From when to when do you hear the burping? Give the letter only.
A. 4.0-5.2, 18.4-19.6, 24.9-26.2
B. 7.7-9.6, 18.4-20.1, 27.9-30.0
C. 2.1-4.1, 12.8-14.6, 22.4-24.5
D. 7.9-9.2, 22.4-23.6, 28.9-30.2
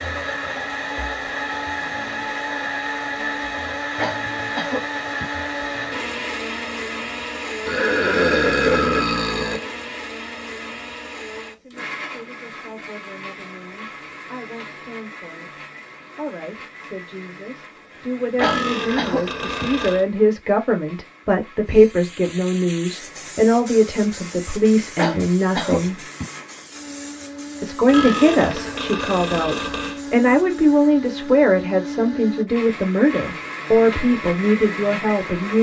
B.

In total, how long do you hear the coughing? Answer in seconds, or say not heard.
4 s.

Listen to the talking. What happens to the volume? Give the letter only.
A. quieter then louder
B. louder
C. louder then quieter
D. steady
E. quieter
B.